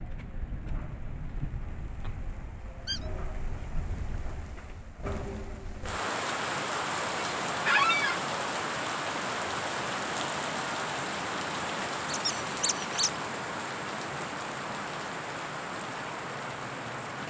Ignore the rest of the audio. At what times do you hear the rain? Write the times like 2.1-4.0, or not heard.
0.0-17.2.